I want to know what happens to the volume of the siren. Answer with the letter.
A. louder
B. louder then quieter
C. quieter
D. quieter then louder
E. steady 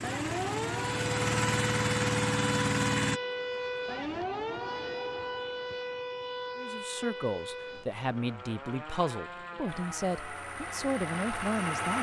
C.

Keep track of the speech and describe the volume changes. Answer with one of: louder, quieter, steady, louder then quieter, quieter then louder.
steady.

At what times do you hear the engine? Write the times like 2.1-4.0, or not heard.
0.0-3.2, 9.7-11.9.